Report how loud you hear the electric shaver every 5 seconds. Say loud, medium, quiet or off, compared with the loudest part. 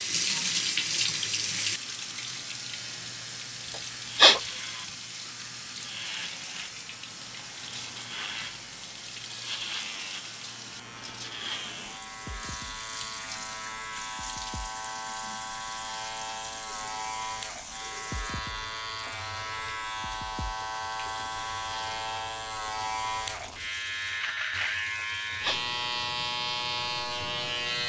quiet, medium, medium, medium, loud, loud.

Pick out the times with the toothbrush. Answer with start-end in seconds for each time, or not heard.
not heard.